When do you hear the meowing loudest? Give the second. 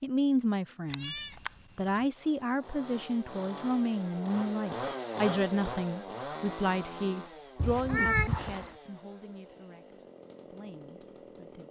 8 s.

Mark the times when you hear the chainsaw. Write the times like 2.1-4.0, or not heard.
2.0-11.6.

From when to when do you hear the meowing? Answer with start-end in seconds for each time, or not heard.
0.9-2.0, 7.5-8.8.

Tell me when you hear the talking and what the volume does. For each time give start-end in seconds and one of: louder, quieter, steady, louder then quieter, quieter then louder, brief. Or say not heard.
0.0-11.6 quieter.